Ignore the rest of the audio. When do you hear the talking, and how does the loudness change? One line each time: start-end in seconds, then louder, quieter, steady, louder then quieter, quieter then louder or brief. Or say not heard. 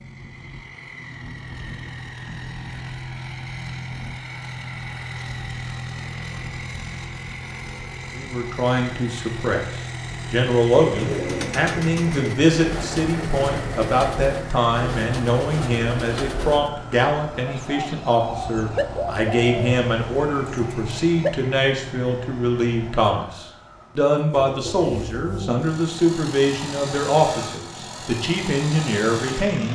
8.2-29.7 steady.